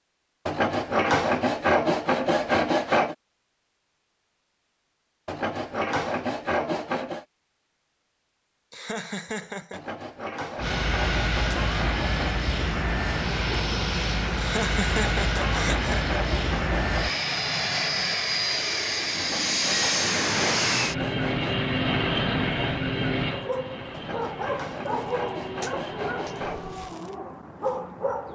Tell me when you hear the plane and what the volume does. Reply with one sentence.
The plane can be heard from 10.6 to 26.9 s, getting quieter.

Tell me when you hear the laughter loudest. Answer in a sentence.
The loudest moment of the laughter is at 15 seconds.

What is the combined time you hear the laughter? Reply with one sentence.
You can hear the laughter for 3 seconds altogether.